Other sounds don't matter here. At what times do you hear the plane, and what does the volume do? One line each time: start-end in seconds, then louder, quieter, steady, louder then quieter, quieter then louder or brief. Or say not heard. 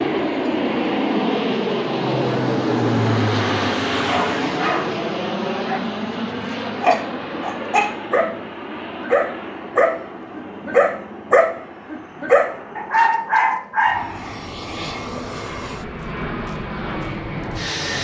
0.0-18.0 quieter then louder.